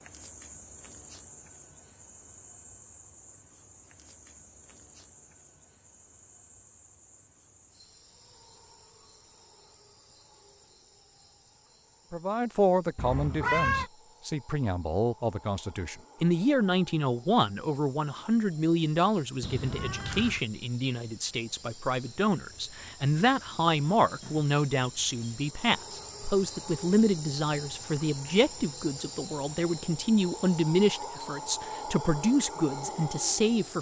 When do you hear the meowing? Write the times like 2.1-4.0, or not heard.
12.9-13.9, 19.4-20.4.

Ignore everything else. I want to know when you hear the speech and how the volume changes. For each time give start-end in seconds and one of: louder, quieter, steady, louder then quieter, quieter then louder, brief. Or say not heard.
12.1-33.7 steady.